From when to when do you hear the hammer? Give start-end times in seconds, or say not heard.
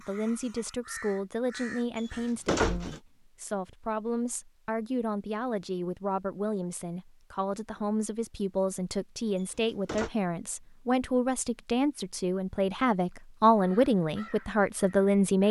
not heard.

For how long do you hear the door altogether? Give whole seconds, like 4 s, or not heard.
2 s.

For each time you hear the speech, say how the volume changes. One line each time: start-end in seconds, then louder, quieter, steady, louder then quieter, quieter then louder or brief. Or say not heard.
0.0-15.4 louder.